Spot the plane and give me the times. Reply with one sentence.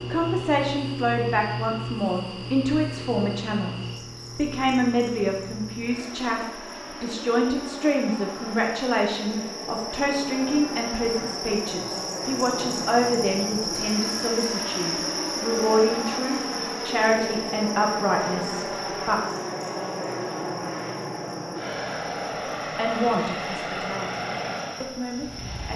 You can hear the plane from 0.0 to 25.7 s.